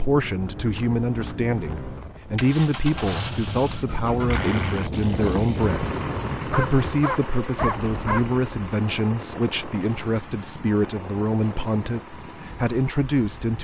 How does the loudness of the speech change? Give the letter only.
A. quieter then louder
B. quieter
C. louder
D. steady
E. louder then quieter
D.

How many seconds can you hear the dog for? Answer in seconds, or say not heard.
2 s.